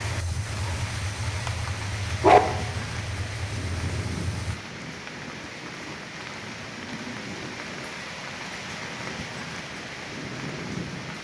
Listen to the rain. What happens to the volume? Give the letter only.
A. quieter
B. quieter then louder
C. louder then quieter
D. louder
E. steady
E.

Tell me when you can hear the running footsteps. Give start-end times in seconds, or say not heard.
not heard.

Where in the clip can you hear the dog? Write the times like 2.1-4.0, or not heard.
0.5-2.4.